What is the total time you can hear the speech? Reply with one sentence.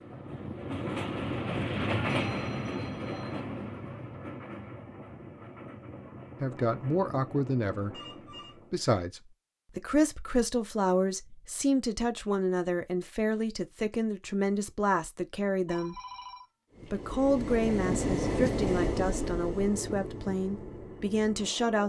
The speech can be heard for 14 seconds in total.